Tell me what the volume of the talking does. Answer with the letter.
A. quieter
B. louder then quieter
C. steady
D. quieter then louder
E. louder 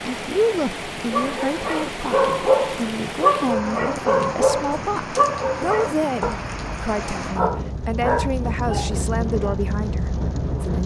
C.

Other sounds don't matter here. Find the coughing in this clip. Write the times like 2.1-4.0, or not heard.
not heard.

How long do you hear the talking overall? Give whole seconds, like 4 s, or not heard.
11 s.